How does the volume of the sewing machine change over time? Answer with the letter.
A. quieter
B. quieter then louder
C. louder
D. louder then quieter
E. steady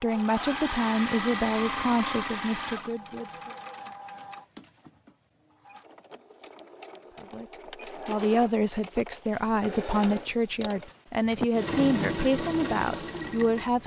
B.